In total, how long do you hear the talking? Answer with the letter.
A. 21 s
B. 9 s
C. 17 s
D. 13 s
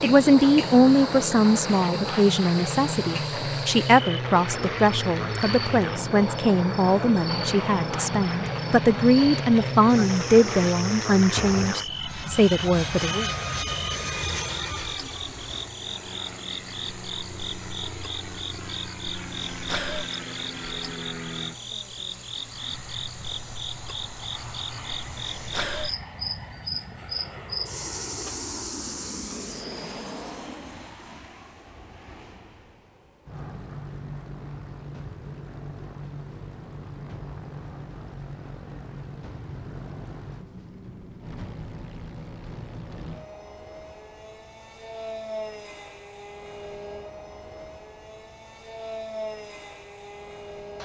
D.